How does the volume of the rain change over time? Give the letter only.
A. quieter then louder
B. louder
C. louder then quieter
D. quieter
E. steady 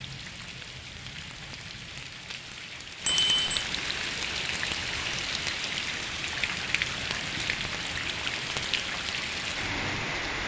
B.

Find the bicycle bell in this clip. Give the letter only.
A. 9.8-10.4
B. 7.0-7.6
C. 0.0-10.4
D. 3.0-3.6
D.